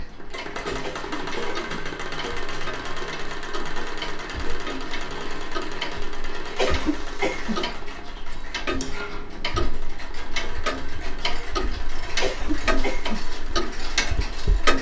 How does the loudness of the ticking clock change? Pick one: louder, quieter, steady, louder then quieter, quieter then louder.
louder.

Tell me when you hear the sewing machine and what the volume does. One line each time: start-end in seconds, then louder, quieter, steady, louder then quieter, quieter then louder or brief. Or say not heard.
0.0-14.7 quieter.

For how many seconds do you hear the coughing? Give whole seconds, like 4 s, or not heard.
3 s.